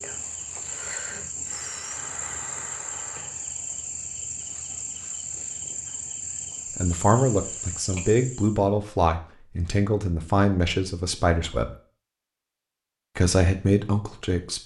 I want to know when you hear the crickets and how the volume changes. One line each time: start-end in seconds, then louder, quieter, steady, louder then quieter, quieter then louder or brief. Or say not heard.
0.0-8.6 steady.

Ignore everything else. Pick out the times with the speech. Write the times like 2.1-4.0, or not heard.
6.8-11.8, 13.2-14.6.